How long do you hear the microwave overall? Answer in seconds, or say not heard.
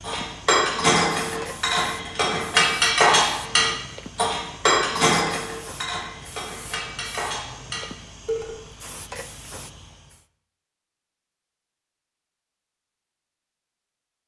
not heard.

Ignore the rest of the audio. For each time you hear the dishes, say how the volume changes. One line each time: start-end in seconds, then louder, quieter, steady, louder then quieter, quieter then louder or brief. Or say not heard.
0.1-8.6 quieter.